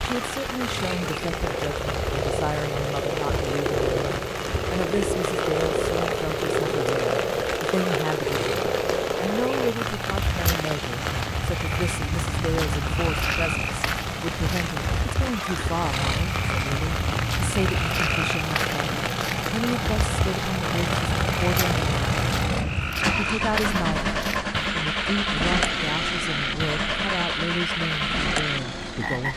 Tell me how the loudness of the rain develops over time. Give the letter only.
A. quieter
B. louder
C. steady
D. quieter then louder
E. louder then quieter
C.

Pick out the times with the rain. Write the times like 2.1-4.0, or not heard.
0.0-22.5.